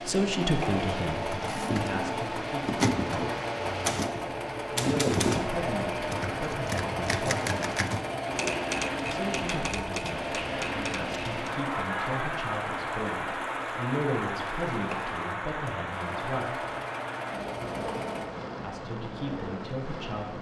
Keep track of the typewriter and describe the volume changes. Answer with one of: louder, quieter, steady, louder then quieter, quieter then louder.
quieter.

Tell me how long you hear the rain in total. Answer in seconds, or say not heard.
20 s.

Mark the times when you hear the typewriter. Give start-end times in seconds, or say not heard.
1.3-11.5.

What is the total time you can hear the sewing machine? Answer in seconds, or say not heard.
18 s.